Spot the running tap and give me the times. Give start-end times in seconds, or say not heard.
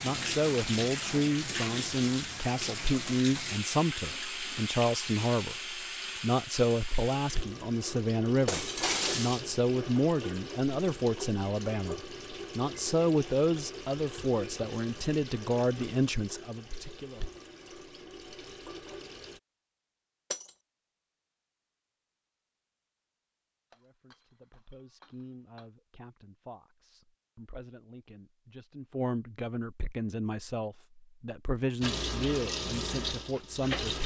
0.0-19.4, 31.8-34.0.